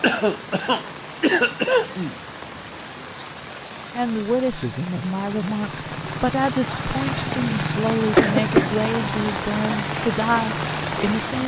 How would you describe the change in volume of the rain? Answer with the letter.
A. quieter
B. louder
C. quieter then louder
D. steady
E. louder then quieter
B.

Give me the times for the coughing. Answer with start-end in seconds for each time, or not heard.
0.0-2.1, 8.2-8.7.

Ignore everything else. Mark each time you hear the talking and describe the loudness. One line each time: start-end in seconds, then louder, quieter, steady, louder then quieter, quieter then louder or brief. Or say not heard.
3.9-11.4 steady.